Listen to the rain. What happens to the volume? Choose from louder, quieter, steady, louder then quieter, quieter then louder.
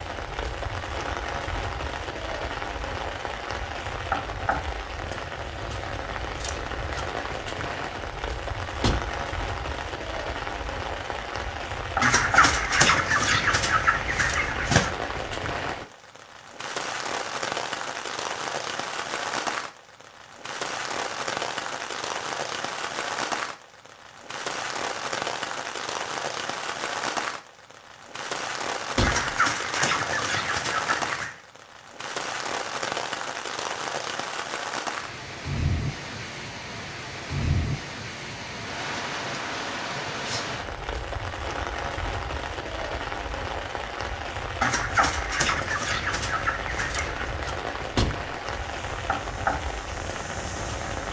steady.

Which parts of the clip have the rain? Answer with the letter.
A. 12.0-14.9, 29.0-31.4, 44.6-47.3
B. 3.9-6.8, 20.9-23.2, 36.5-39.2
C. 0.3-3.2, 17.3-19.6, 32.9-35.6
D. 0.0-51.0
D.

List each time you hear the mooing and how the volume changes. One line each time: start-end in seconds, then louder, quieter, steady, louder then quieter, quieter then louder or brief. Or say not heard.
not heard.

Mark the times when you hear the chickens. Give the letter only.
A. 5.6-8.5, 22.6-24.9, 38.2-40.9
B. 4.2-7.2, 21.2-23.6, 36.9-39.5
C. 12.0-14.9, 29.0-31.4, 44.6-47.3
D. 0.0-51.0
C.